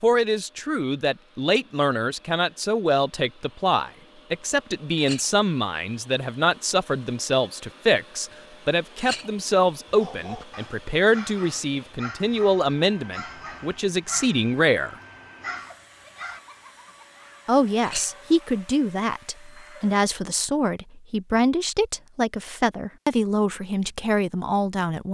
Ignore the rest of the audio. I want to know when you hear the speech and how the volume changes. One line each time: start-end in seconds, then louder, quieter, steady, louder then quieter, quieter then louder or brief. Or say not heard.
0.0-14.9 steady
17.4-25.0 steady.